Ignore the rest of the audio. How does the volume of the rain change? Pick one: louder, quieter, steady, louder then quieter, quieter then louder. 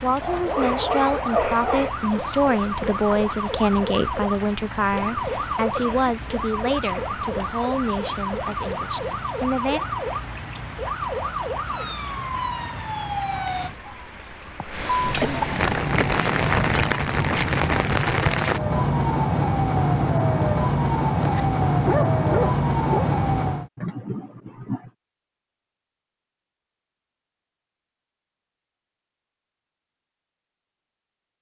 louder.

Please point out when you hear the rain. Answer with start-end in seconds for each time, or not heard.
0.0-18.6.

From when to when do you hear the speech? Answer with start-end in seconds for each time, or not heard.
0.0-9.8.